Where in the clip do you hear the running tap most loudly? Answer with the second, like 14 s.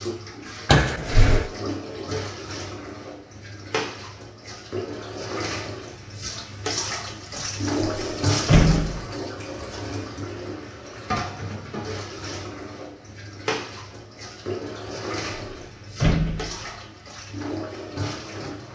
8 s.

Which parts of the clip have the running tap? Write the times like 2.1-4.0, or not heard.
0.0-18.7.